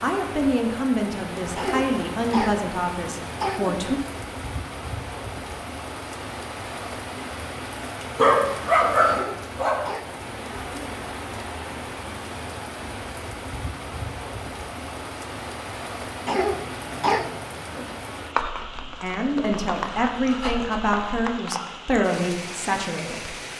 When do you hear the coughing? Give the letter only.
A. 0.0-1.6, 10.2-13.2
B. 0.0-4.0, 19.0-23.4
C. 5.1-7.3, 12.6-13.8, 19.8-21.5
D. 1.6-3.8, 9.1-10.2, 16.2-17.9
D.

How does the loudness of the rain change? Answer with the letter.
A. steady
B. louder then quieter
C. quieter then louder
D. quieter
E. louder
A.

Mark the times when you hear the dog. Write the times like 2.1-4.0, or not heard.
8.2-9.8, 18.4-21.4.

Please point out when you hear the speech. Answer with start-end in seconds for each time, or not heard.
0.0-4.0, 19.0-23.4.